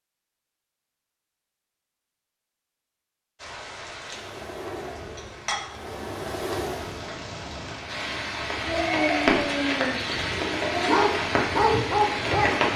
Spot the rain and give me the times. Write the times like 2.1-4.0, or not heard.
3.4-12.7.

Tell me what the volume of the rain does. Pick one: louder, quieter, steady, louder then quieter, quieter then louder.
louder.